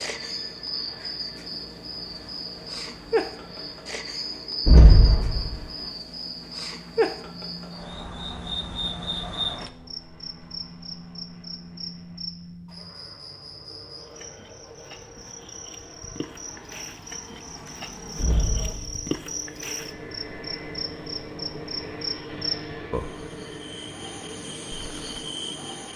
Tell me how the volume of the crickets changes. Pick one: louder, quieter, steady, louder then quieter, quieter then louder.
quieter then louder.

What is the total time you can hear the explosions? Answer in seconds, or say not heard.
2 s.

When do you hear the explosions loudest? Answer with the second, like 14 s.
5 s.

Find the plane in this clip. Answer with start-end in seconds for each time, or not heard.
0.0-25.9.